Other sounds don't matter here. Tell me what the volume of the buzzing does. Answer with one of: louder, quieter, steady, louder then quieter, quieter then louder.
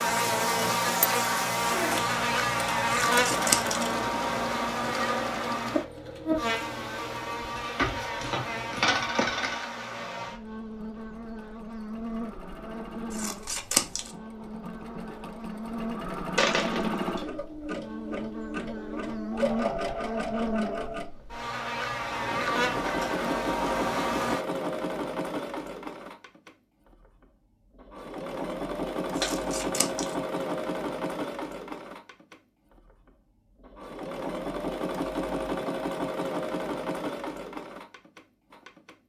quieter then louder.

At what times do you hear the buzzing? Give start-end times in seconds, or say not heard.
0.0-24.4.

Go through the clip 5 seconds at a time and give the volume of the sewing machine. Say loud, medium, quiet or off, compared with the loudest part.
loud, medium, quiet, loud, loud, loud, loud, loud.